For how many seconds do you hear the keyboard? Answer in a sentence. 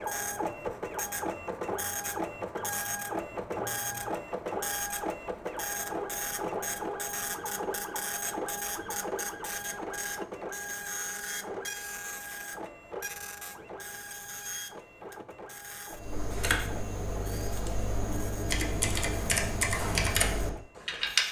You can hear the keyboard for 5 seconds altogether.